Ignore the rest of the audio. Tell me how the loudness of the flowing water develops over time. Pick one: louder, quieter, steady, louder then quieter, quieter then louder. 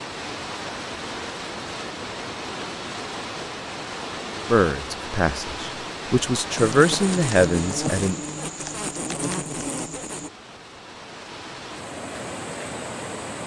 quieter then louder.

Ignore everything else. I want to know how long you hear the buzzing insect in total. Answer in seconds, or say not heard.
4 s.